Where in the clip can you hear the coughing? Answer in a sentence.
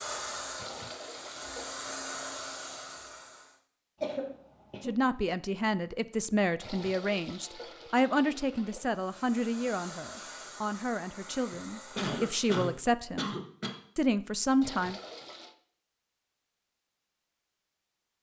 You can hear the coughing from 4.0 to 4.9 s and from 11.5 to 13.8 s.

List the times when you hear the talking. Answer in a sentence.
You can hear the talking from 4.8 to 13.3 s and from 13.9 to 15.0 s.